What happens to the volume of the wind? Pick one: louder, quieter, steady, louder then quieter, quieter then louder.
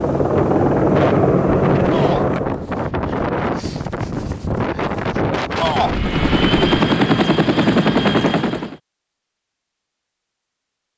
steady.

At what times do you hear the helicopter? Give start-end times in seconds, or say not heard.
0.0-2.6, 5.8-8.8.